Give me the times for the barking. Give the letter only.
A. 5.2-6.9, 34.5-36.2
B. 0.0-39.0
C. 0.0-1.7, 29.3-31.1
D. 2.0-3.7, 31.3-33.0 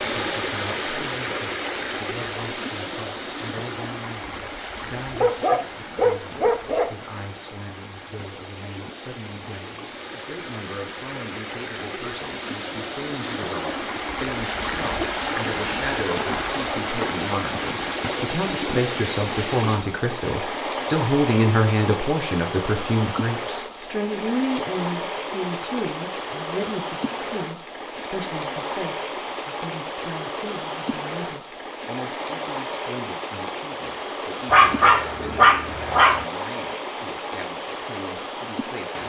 A.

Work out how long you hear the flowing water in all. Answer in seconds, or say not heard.
39 s.